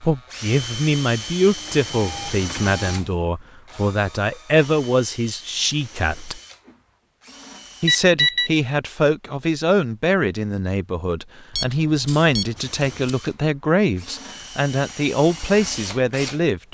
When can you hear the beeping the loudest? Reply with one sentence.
The volume of the beeping peaks at 8 seconds.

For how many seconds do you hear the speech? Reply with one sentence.
The speech can be heard for 15 seconds in total.